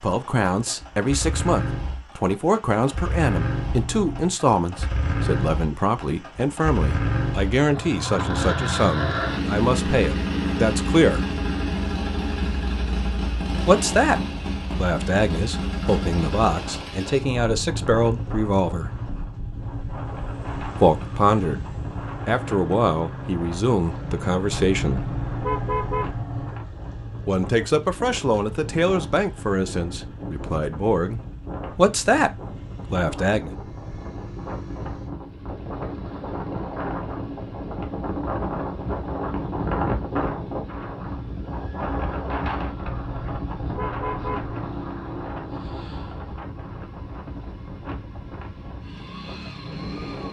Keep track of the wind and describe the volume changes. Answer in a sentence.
The volume of the wind goes up, then down.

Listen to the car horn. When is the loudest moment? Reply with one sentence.
The loudest moment of the car horn is at 26 seconds.